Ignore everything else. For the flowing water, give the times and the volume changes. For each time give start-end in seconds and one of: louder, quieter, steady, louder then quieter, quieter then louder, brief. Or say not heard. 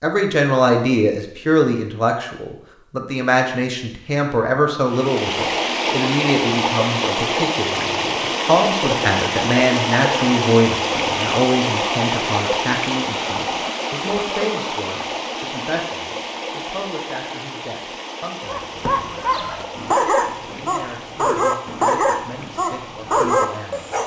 4.8-24.0 quieter.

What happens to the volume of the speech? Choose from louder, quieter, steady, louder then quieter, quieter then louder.
quieter.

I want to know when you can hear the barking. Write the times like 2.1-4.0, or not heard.
18.4-24.0.